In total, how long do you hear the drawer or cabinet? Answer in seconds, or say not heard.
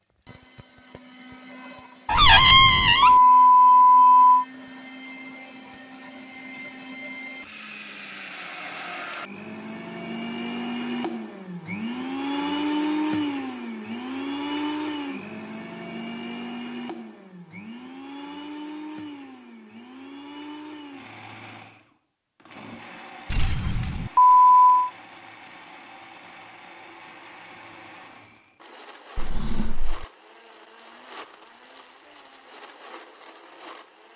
2 s.